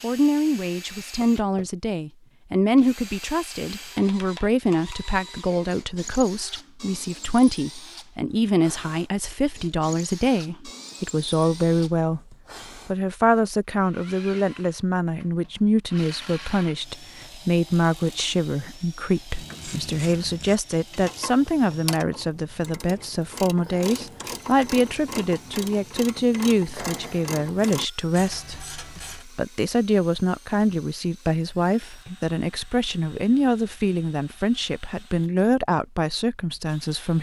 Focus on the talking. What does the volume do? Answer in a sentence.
The loudness of the talking stays about the same.